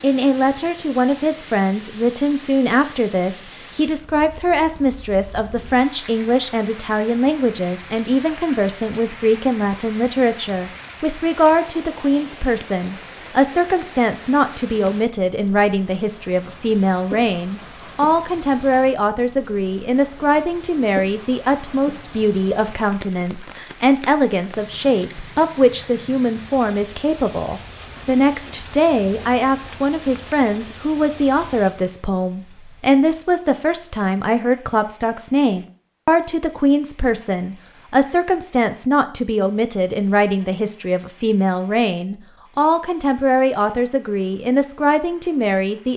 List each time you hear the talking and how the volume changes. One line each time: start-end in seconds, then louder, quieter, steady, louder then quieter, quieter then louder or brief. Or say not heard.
0.0-45.9 steady.